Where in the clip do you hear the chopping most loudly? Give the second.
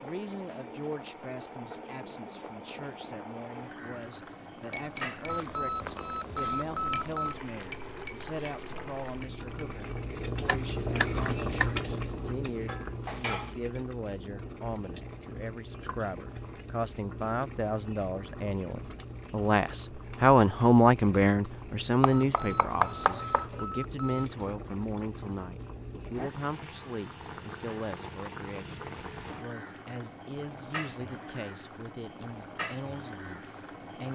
23 s.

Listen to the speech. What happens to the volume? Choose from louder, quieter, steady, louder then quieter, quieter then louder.
louder then quieter.